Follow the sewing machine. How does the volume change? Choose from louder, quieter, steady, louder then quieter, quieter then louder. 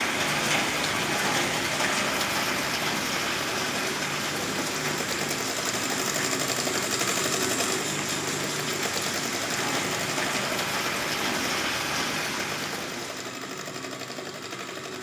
louder then quieter.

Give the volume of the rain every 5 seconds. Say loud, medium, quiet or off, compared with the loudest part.
loud, medium, loud.